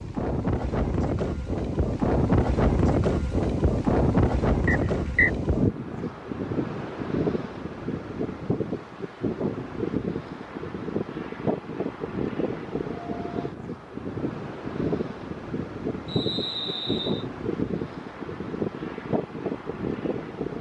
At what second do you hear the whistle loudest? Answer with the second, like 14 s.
5 s.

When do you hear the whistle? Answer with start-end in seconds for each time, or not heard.
4.7-5.3, 16.1-17.2.